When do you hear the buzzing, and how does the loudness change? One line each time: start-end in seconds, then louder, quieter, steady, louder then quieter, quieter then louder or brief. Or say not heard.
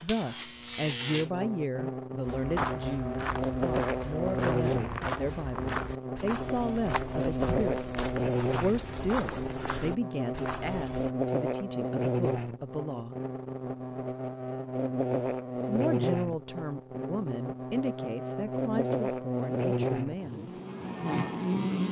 0.0-21.8 steady.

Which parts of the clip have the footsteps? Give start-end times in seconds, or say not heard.
2.2-11.1.